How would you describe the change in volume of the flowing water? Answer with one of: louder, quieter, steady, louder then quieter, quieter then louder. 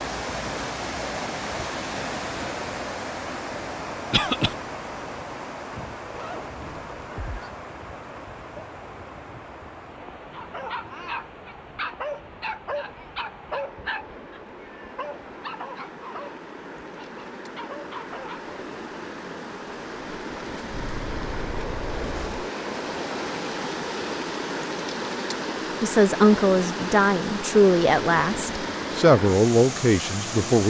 quieter then louder.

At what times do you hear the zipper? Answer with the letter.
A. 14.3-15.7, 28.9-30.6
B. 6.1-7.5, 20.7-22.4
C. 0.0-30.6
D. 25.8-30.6
B.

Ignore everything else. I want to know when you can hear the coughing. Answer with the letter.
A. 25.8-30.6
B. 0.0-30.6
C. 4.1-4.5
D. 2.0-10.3
C.